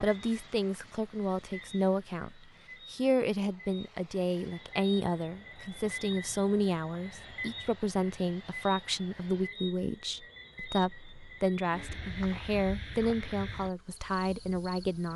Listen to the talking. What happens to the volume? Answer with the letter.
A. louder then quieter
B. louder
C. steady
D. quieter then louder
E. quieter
C.